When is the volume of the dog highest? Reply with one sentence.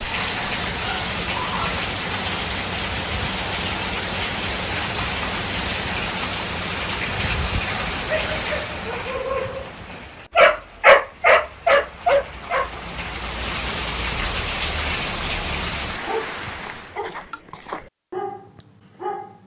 The volume of the dog peaks at 11 seconds.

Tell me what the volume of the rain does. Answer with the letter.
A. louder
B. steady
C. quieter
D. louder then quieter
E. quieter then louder
E.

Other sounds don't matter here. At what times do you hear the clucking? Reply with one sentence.
You can't hear the clucking here.